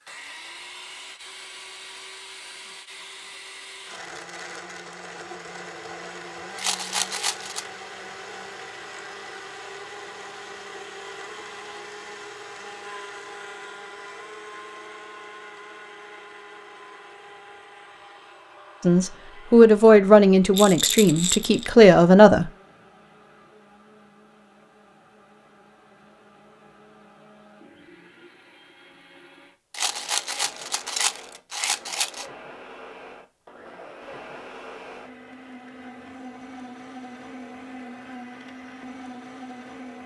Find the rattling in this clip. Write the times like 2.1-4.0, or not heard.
6.5-7.7, 20.5-21.8, 29.7-32.2.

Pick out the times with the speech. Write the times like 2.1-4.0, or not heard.
18.8-22.5.